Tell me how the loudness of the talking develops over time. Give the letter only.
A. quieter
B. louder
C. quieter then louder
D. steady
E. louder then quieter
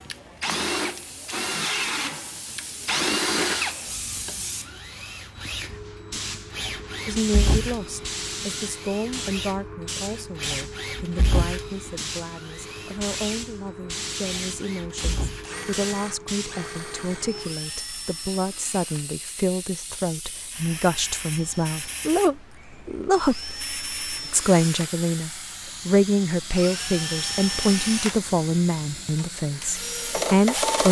B.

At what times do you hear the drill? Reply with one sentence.
You can hear the drill from 0.1 to 30.8 s.